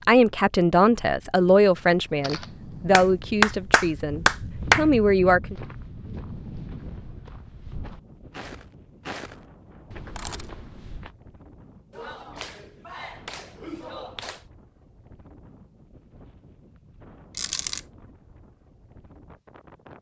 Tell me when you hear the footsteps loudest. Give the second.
9 s.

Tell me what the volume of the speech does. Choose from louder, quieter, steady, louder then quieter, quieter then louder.
quieter then louder.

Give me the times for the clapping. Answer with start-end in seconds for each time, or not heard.
2.9-4.8, 11.9-14.4.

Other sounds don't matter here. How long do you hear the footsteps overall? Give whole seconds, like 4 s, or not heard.
6 s.